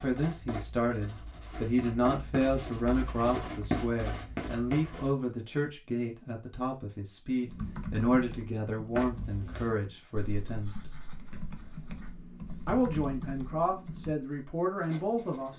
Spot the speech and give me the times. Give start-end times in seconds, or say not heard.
0.0-10.8, 12.7-15.5.